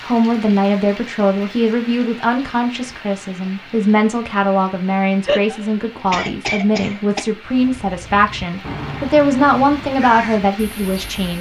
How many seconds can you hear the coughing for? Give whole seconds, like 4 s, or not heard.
2 s.